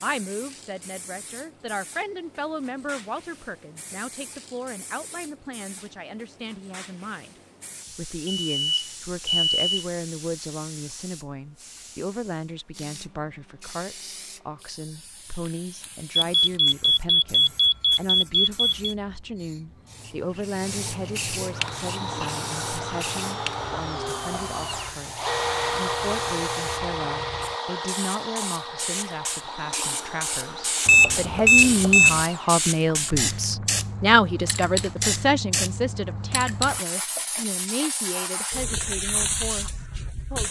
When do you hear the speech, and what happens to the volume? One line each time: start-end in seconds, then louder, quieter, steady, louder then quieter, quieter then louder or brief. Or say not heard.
0.0-40.4 louder.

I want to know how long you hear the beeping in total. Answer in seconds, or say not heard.
6 s.